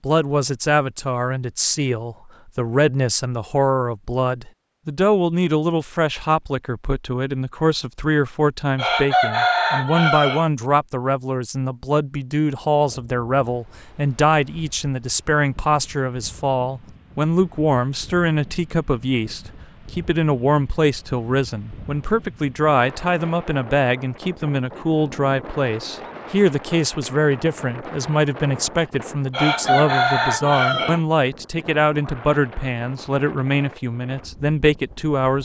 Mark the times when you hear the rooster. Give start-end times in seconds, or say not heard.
8.8-10.4, 29.3-31.0.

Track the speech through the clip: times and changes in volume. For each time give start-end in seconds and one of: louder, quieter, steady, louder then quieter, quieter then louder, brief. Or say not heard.
0.0-35.3 steady.